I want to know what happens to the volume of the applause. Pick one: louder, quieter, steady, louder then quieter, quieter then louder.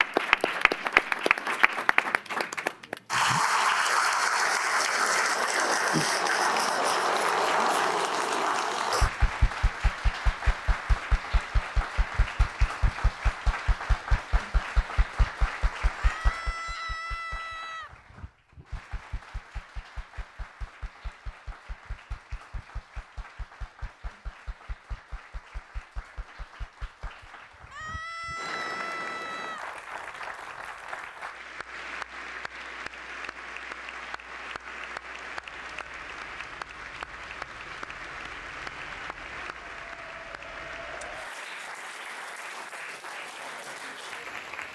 quieter then louder.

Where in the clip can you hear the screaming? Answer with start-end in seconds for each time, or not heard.
15.9-17.9, 27.7-29.6.